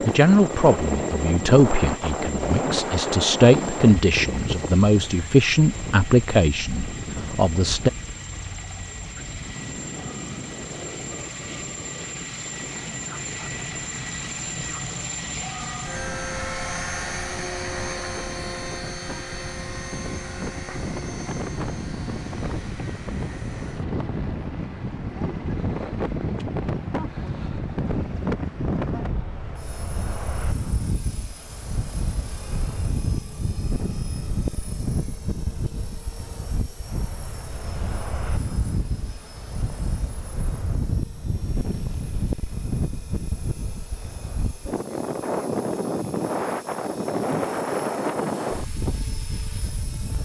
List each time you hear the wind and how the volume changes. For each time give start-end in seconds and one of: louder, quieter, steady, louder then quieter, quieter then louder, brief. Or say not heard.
0.0-50.1 quieter then louder.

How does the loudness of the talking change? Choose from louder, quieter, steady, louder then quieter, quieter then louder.
quieter then louder.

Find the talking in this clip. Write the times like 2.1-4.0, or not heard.
0.0-7.9.